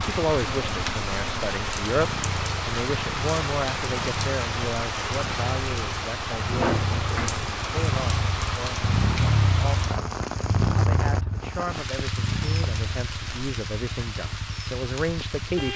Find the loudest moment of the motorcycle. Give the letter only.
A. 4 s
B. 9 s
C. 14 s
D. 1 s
B.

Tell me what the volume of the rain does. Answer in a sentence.
The loudness of the rain goes down.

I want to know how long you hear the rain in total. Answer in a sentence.
You can hear the rain for 16 seconds altogether.